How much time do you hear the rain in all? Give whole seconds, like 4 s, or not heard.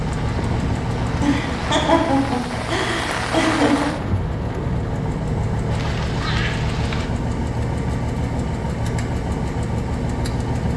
7 s.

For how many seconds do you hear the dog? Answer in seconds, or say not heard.
not heard.